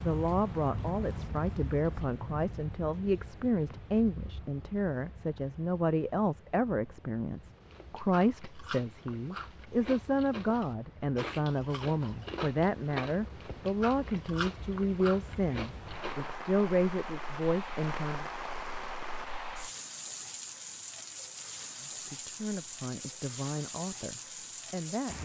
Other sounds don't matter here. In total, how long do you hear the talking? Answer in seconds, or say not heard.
22 s.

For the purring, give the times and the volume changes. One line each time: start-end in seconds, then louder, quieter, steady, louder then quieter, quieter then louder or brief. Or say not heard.
not heard.